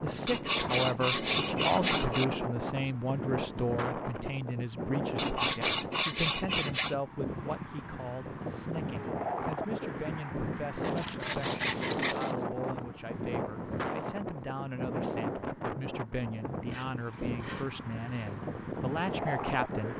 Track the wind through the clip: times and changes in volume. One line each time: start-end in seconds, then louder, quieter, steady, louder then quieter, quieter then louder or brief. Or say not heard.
0.0-19.9 steady.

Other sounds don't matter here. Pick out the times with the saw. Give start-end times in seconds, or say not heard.
0.2-2.2, 5.2-7.0, 10.8-12.3, 16.6-18.4.